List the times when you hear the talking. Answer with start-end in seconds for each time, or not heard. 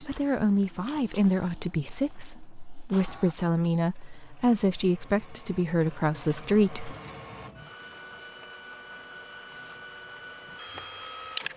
0.0-7.0.